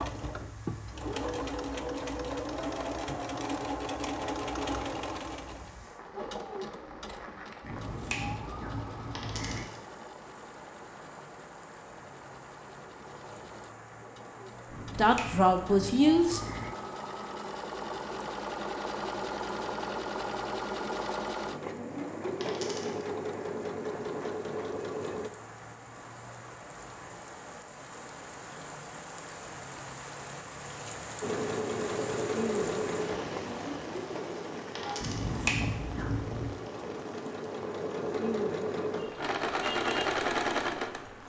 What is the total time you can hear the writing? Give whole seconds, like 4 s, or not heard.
not heard.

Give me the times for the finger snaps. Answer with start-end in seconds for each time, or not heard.
7.6-9.7, 14.7-16.7, 35.0-36.5.